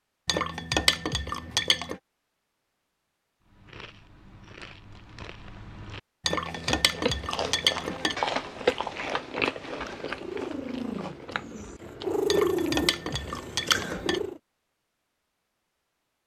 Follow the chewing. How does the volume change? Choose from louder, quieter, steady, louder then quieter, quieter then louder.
louder then quieter.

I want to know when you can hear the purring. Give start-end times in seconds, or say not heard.
9.8-14.4.